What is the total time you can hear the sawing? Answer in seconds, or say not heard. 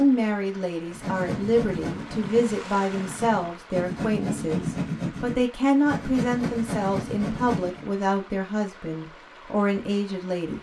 7 s.